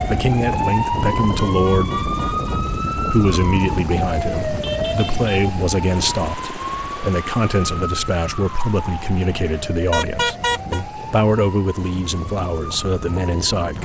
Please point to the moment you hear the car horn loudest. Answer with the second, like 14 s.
10 s.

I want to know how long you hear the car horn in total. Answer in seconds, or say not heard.
3 s.